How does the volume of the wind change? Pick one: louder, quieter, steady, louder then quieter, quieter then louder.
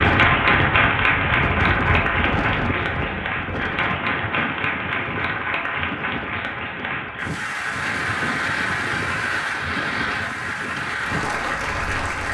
quieter.